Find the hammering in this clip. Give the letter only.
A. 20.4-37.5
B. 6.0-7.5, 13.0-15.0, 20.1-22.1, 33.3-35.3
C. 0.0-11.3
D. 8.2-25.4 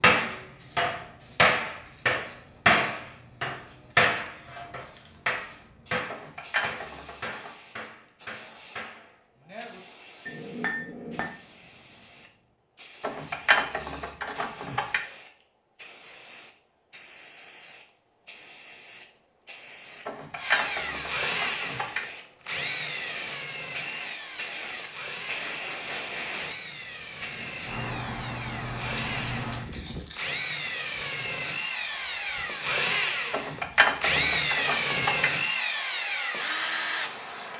C.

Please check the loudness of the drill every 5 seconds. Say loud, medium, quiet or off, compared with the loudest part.
off, off, off, off, medium, medium, loud, loud.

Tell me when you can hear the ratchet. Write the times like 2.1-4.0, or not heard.
6.0-7.5, 13.0-15.0, 20.1-22.1, 33.3-35.3.